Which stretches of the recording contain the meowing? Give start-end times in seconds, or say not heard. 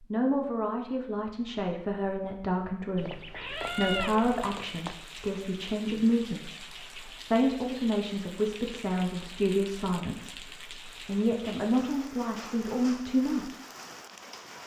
3.0-5.0.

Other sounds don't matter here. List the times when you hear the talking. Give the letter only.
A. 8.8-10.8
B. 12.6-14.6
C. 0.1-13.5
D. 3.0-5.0
C.